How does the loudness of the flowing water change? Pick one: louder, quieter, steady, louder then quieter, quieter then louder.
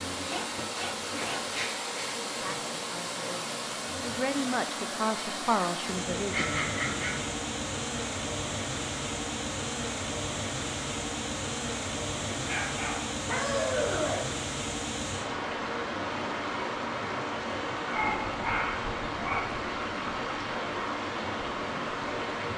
steady.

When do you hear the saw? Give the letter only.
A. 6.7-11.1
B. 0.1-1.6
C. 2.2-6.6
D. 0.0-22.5
B.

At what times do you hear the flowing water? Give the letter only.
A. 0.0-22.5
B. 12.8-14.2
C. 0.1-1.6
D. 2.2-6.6
A.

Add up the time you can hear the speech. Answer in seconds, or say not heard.
4 s.